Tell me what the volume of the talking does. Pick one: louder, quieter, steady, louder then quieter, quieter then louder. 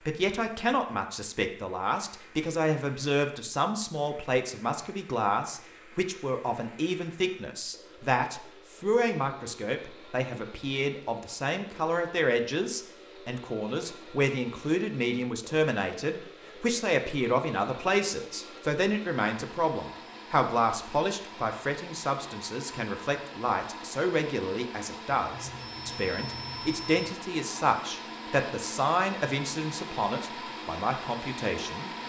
steady.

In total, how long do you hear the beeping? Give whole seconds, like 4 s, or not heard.
2 s.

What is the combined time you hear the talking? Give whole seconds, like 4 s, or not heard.
32 s.